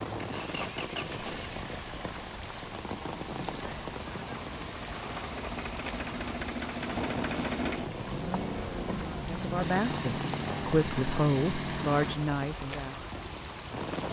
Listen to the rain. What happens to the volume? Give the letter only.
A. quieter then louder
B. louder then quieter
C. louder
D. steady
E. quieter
D.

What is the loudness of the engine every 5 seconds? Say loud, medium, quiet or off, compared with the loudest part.
medium, loud, loud.